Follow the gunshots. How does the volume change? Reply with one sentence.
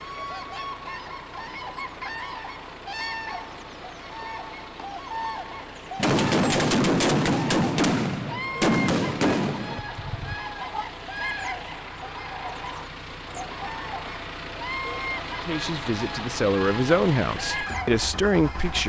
The volume of the gunshots goes down.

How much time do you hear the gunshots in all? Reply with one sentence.
The gunshots can be heard for 5 seconds in total.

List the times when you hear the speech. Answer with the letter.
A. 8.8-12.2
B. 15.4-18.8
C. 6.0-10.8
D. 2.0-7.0
B.